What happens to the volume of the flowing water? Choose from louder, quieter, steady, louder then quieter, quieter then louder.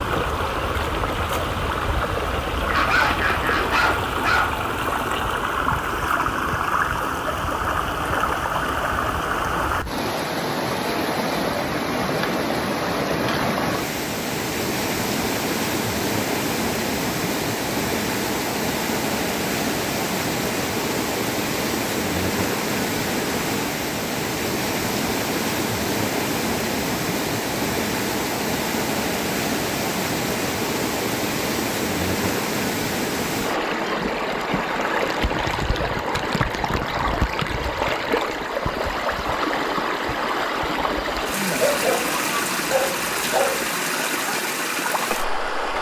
steady.